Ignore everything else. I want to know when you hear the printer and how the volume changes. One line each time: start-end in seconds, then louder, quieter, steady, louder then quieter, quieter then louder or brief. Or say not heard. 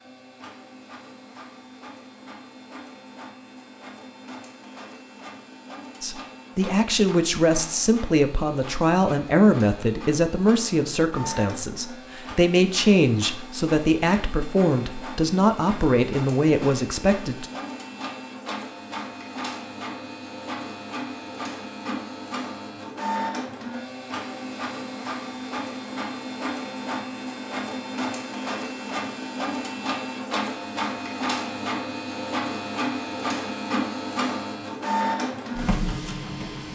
0.0-36.7 louder.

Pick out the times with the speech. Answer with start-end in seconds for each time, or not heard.
6.0-17.4.